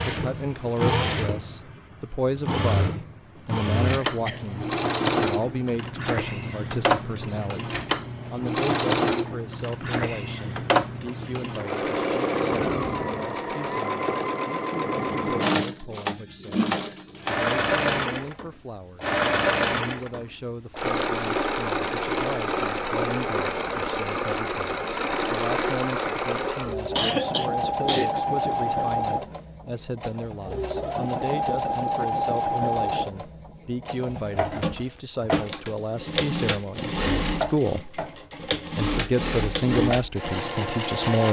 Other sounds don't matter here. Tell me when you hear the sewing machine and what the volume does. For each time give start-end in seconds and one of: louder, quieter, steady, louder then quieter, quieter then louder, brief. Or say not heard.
0.0-41.2 steady.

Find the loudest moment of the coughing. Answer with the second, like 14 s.
27 s.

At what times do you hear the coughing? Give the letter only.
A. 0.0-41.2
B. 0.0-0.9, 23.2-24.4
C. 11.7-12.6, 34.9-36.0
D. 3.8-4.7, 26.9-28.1
D.